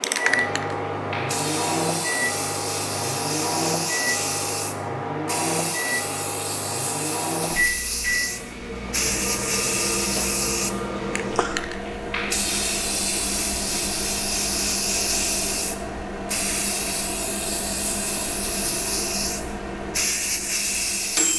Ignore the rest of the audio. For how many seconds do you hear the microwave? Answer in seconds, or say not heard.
21 s.